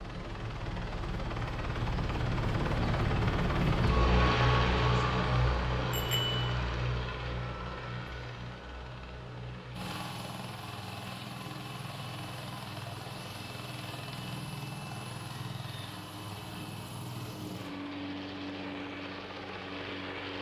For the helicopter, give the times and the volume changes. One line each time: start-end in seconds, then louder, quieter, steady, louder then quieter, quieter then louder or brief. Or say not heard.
0.0-20.3 quieter.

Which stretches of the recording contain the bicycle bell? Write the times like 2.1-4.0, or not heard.
5.9-6.5.